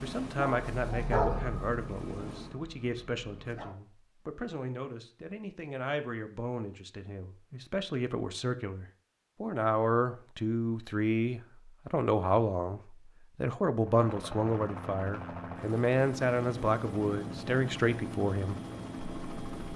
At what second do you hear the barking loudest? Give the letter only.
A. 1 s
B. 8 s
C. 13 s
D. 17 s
A.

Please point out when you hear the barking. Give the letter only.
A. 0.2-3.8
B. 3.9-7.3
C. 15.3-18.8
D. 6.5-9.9
A.